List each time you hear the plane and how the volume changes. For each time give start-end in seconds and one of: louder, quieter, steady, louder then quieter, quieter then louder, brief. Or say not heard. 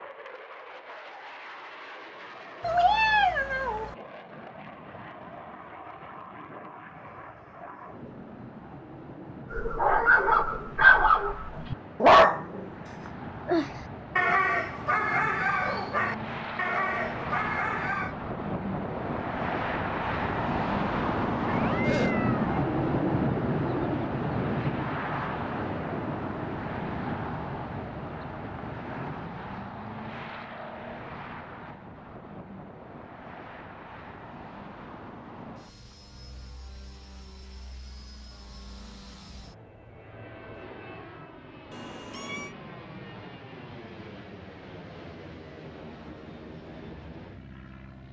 0.0-48.0 louder then quieter.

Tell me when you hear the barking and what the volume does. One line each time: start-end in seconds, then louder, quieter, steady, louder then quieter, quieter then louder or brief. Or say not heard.
9.5-18.1 quieter.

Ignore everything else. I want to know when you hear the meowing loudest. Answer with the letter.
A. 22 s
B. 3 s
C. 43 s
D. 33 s
B.